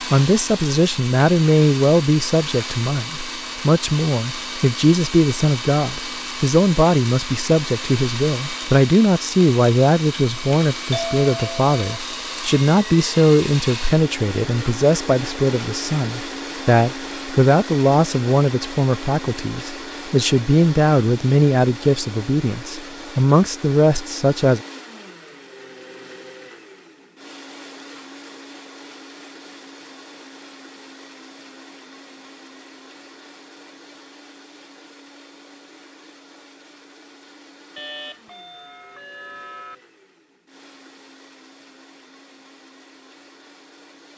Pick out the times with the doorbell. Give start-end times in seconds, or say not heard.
10.9-12.0, 37.8-39.8.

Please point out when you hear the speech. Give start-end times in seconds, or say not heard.
0.1-24.6.